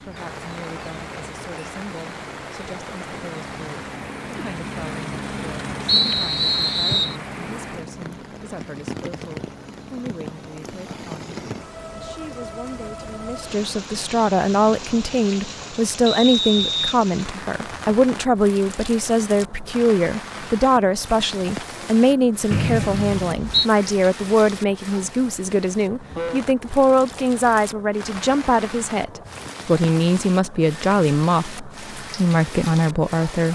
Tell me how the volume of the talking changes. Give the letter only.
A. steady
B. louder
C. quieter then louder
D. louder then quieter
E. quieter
B.